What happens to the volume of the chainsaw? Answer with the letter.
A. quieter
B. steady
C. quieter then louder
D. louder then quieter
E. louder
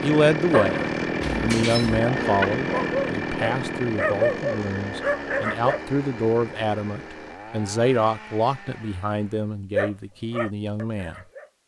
A.